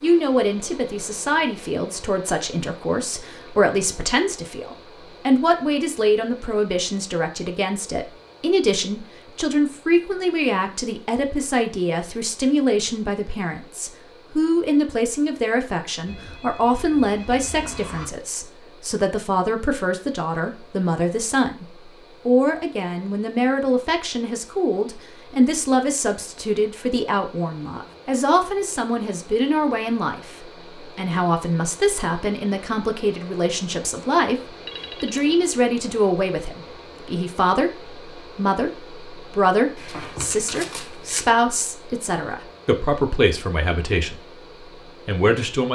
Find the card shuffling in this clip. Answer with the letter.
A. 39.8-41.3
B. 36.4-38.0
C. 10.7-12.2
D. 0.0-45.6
A.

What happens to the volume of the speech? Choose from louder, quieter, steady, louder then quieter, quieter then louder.
steady.